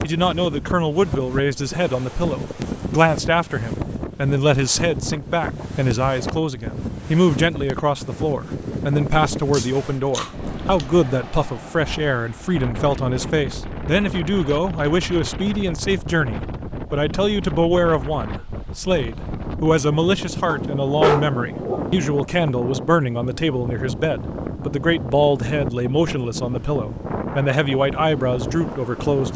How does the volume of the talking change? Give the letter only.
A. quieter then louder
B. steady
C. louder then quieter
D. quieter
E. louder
B.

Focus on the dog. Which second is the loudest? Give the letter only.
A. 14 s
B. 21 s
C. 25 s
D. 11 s
B.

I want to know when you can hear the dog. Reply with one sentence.
The dog can be heard from 9.5 to 10.8 s and from 20.4 to 21.9 s.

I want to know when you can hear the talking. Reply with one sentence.
You can hear the talking from 0.0 to 29.3 s.